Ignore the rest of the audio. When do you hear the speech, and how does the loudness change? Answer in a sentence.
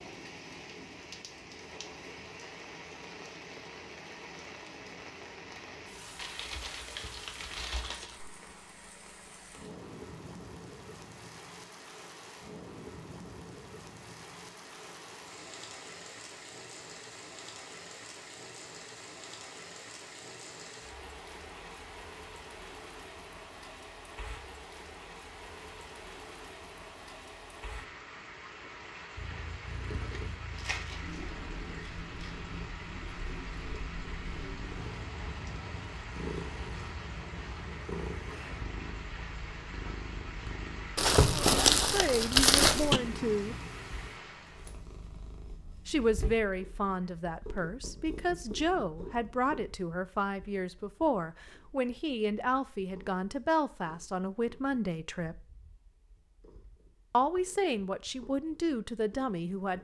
You can hear the speech briefly from 41.3 to 43.5 s; from 45.9 to 55.4 s, at a steady volume; and briefly from 57.1 to 59.7 s.